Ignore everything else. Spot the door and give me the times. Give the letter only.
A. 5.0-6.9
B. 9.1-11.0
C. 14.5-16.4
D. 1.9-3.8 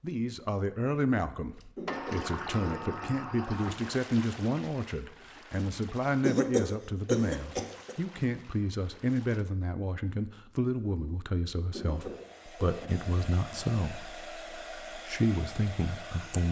D.